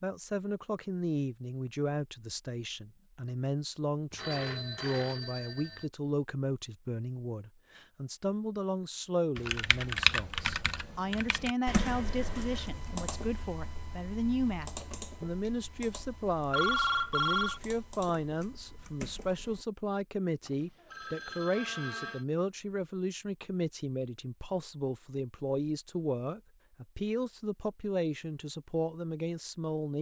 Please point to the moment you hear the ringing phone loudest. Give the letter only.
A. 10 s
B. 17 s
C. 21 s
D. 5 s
B.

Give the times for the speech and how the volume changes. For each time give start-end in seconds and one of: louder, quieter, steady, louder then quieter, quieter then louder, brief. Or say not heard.
0.0-29.9 steady.